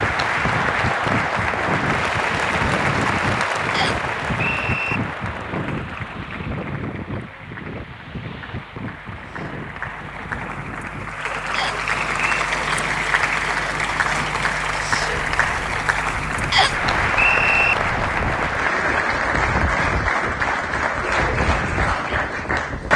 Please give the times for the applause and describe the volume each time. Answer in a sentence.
You can hear the applause from 0.0 to 22.9 s, getting quieter then louder.